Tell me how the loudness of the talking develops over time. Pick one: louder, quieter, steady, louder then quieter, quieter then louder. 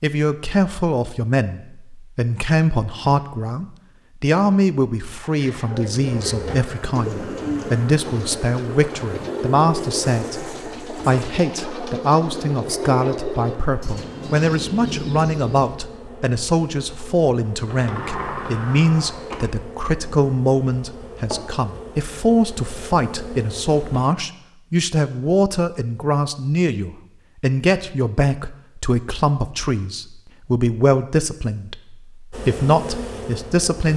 steady.